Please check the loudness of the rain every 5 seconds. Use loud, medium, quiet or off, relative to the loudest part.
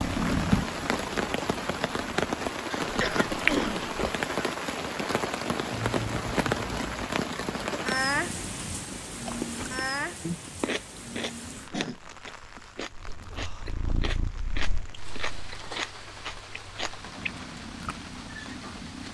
loud, loud, quiet, quiet.